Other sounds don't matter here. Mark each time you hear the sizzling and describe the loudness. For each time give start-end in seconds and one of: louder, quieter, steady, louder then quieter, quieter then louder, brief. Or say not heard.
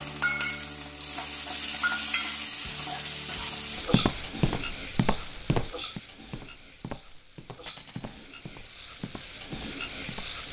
0.0-10.4 quieter then louder.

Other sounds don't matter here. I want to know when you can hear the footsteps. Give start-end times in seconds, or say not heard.
3.8-10.4.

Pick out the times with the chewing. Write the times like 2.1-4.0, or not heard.
not heard.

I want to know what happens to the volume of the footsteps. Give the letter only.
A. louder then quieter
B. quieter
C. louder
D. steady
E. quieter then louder
B.